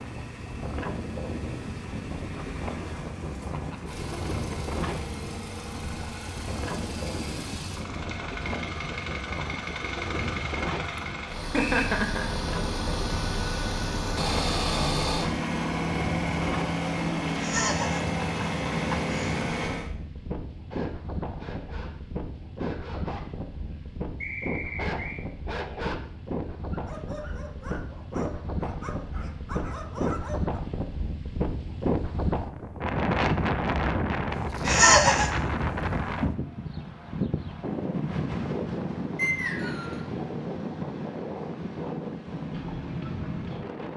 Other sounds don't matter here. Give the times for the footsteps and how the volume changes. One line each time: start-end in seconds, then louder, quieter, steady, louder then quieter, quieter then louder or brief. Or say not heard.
not heard.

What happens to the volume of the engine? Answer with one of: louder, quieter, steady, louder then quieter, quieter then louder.
louder.